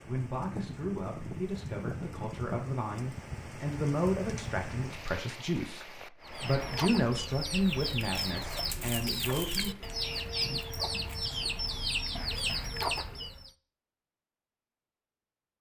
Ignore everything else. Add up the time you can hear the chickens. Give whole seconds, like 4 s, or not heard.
7 s.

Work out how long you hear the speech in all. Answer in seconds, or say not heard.
10 s.